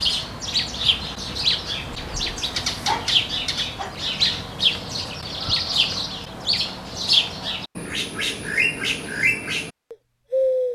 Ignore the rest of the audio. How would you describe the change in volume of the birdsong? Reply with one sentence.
The volume of the birdsong stays about the same.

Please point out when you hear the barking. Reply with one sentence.
The barking can be heard from 1.9 to 4.0 s.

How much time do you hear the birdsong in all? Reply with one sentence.
The birdsong can be heard for 11 seconds in total.